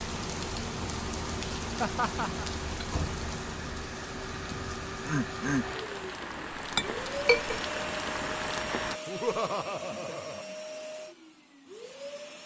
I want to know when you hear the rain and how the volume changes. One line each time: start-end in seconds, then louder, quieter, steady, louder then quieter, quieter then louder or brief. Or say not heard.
0.0-9.0 quieter then louder.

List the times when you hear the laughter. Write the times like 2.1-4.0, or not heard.
1.8-2.5, 4.5-5.7, 9.1-10.4.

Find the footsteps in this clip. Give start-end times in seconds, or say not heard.
not heard.